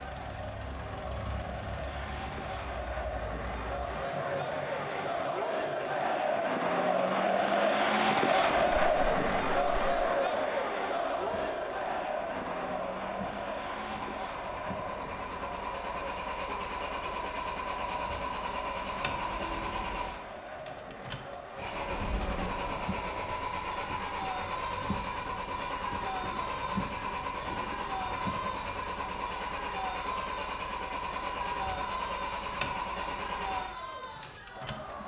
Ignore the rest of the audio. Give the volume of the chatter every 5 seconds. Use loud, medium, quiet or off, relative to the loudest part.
medium, loud, medium, quiet, quiet, quiet, quiet.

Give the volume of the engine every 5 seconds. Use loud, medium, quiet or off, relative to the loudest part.
medium, quiet, medium, loud, loud, loud, loud.